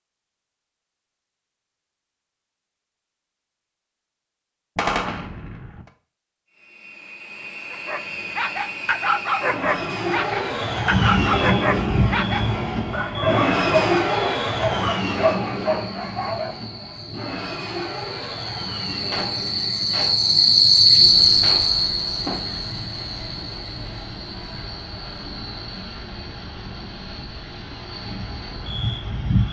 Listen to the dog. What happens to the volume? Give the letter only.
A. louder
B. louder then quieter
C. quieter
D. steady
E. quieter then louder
D.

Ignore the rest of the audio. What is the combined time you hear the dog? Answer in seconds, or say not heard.
9 s.